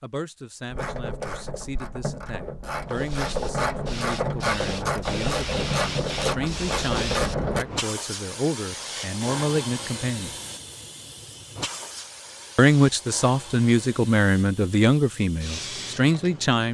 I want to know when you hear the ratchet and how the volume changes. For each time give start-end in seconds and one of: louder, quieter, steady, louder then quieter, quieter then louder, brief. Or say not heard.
0.7-7.7 louder.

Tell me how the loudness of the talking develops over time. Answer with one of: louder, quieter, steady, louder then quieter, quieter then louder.
louder.